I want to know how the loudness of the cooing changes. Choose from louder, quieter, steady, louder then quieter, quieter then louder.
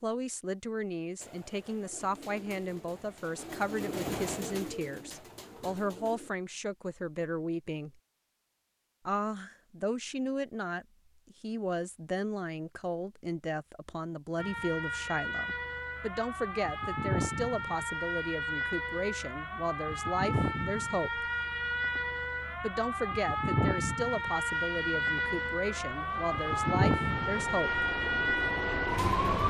louder then quieter.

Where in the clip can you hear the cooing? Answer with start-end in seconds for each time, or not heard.
1.2-6.3.